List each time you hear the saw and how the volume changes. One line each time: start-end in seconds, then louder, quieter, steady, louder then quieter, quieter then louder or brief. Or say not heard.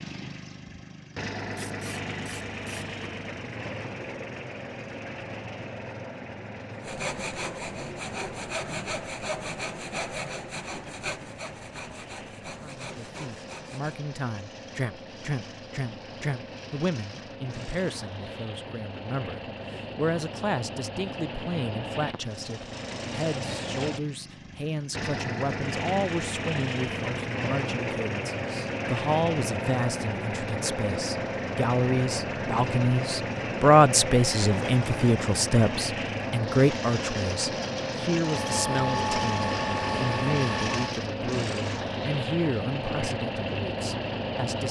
6.8-14.0 quieter.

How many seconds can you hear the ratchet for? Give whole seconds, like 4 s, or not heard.
4 s.